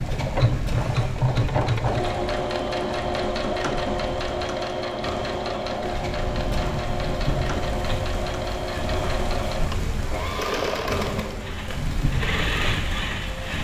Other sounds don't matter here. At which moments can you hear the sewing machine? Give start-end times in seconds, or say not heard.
0.0-13.5.